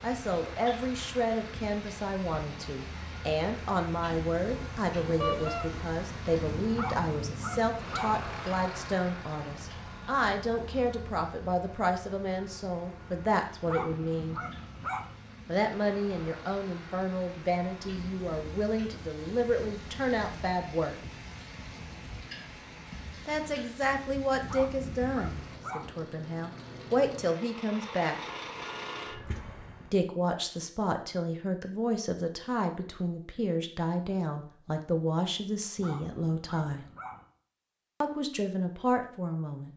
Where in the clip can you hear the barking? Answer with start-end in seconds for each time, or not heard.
6.7-8.2, 13.7-15.2, 24.4-25.9, 35.8-37.2.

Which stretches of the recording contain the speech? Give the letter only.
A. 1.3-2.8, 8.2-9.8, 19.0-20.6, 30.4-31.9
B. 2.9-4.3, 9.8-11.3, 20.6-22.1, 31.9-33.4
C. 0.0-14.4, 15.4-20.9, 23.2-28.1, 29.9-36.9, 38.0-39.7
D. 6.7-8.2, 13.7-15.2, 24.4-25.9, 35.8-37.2
C.